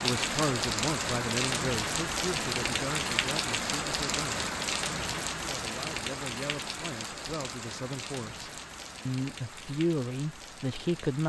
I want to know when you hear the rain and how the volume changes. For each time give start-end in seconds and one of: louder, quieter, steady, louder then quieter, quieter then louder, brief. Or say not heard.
0.0-11.2 quieter.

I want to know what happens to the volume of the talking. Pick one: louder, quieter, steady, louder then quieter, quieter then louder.
quieter then louder.